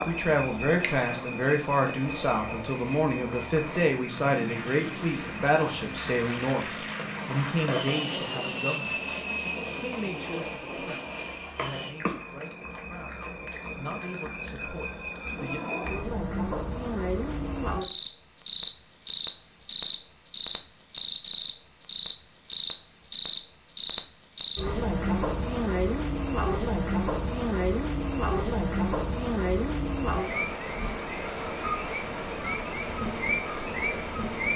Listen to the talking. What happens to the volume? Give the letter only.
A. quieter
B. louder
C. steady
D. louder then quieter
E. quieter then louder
A.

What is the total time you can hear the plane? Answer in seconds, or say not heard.
12 s.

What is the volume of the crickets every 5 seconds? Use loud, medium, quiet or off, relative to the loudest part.
quiet, quiet, quiet, loud, loud, loud, loud.